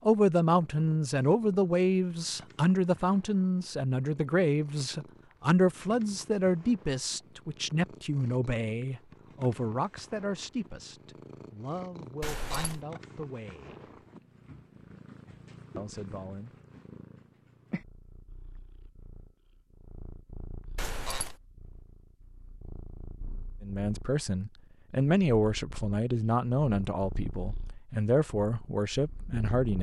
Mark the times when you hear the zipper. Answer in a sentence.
The zipper can be heard from 12.2 to 12.8 s and from 20.8 to 21.4 s.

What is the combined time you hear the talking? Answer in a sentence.
You can hear the talking for 21 seconds altogether.